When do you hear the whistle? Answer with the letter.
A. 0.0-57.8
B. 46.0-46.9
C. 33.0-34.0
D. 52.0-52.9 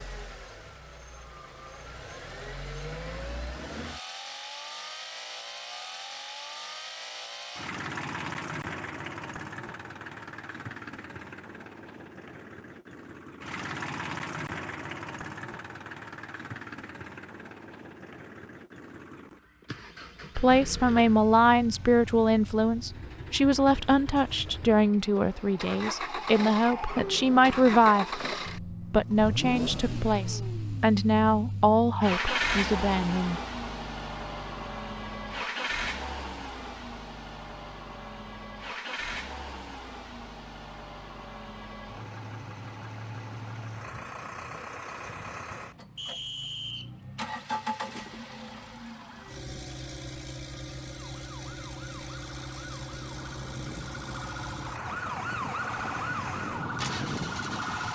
B.